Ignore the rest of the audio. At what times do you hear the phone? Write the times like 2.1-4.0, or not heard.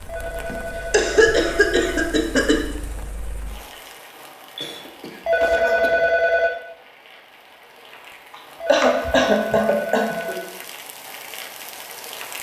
0.1-2.1, 5.2-6.5, 8.6-10.5.